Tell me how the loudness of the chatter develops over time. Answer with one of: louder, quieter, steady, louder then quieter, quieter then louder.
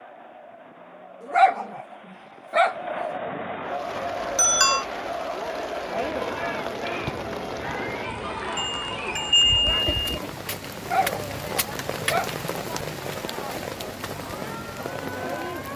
louder then quieter.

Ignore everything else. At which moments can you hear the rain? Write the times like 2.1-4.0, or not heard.
3.6-15.7.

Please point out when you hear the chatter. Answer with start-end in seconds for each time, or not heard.
0.0-15.7.